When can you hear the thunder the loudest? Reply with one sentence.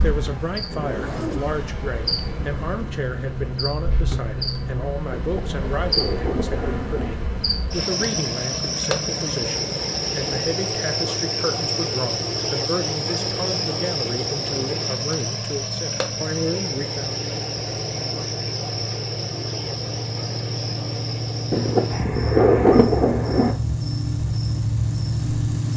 The loudest moment of the thunder is at 23 seconds.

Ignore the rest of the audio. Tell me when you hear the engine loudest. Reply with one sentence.
The loudest moment of the engine is at 25 seconds.